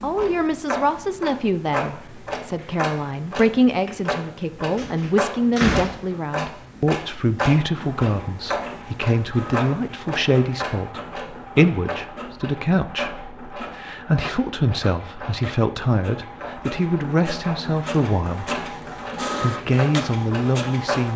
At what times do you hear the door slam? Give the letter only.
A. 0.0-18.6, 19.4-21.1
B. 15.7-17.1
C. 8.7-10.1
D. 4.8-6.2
D.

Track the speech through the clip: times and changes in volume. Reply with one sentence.
The speech can be heard from 0.0 to 18.6 s, at a steady volume; and briefly from 19.4 to 21.1 s.